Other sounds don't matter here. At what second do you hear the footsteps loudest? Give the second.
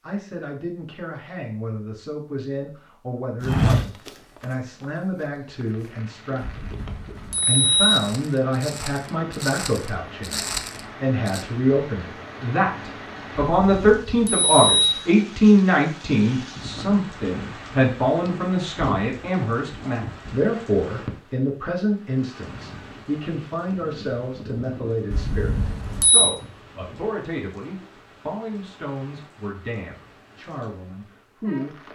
4 s.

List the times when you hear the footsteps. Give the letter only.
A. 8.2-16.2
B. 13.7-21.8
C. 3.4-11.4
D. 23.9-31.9
C.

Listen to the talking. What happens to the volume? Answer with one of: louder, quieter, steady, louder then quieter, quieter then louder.
louder then quieter.